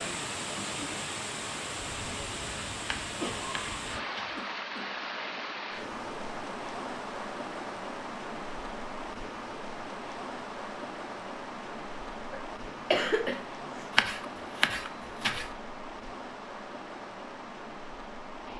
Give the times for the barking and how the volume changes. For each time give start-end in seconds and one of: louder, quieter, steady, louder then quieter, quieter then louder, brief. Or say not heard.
not heard.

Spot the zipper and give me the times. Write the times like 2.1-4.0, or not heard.
not heard.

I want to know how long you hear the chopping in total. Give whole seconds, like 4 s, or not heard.
3 s.